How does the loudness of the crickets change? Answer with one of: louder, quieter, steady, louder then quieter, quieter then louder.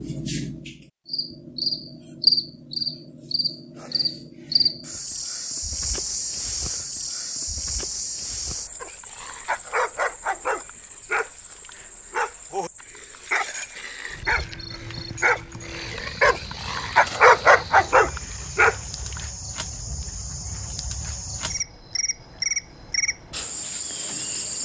quieter then louder.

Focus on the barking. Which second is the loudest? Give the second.
17 s.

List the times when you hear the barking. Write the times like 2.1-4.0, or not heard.
8.8-19.2.